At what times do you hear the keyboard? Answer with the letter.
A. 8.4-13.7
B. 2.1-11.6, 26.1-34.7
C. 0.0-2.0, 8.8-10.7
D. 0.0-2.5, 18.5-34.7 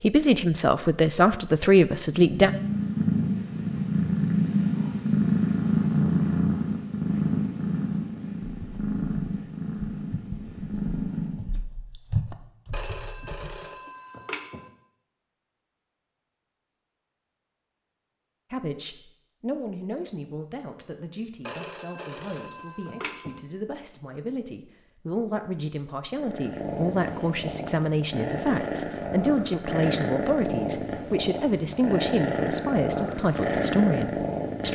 A.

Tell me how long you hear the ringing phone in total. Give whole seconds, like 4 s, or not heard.
4 s.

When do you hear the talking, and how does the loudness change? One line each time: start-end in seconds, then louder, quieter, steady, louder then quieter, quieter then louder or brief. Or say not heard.
0.0-2.5 brief
18.5-34.7 louder.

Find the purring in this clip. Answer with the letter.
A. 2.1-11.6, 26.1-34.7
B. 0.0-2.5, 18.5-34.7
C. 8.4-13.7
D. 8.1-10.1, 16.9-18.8
A.